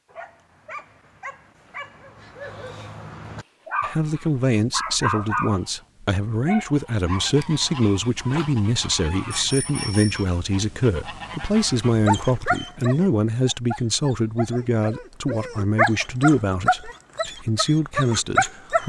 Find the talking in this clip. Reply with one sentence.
You can hear the talking from 3.8 to 18.8 s.